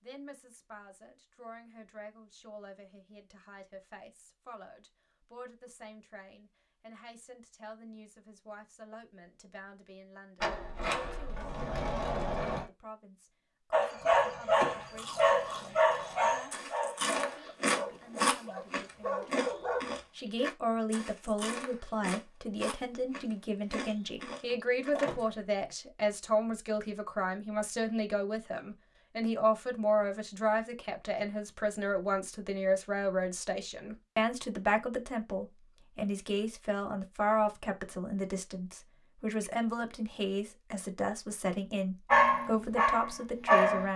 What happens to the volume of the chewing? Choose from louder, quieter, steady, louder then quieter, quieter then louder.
louder then quieter.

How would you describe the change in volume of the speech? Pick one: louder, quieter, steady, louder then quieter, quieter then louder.
louder.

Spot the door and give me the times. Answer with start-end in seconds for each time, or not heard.
10.3-12.7, 24.1-25.4.